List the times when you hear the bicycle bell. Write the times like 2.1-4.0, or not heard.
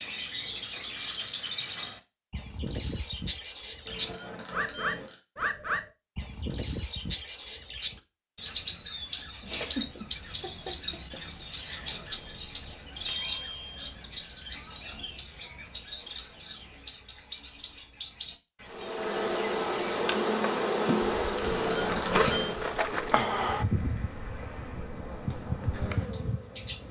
3.9-5.2, 12.1-13.9, 21.4-22.6.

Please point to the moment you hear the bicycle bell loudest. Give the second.
22 s.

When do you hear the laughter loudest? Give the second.
10 s.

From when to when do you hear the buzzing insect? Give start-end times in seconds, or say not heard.
18.7-26.8.